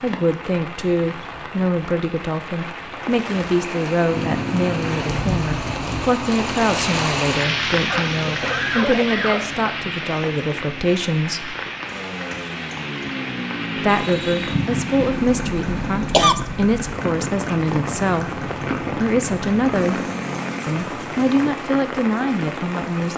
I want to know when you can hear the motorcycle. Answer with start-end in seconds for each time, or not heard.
4.0-21.5.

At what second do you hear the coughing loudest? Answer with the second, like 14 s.
16 s.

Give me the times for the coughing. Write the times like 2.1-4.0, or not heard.
7.9-9.6, 14.5-16.4.